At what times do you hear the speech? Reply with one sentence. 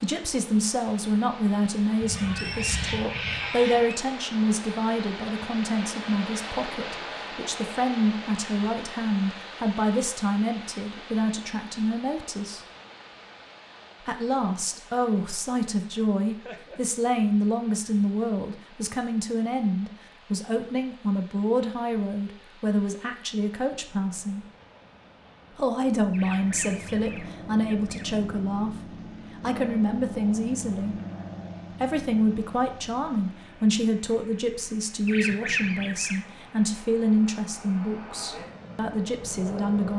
You can hear the speech from 0.0 to 12.6 s, from 14.1 to 24.4 s, from 25.6 to 30.9 s and from 31.8 to 39.9 s.